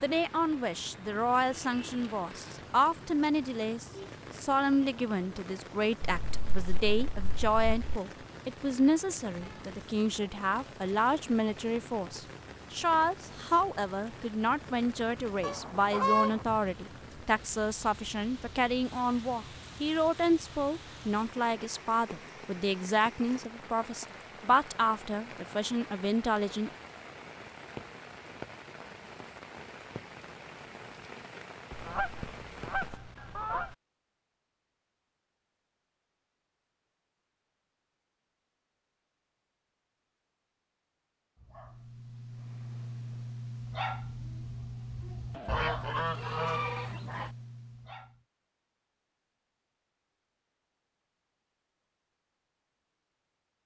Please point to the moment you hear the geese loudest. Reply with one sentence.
The loudest moment of the geese is at 16 seconds.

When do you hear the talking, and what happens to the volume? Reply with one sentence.
You can hear the talking from 0.0 to 26.7 s, at a steady volume.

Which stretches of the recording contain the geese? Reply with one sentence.
You can hear the geese from 6.0 to 8.0 s, from 15.4 to 16.4 s, from 31.7 to 33.8 s and from 45.4 to 47.3 s.